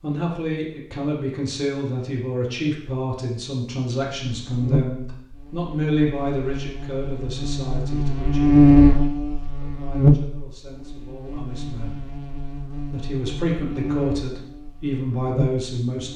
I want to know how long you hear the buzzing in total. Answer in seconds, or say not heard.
12 s.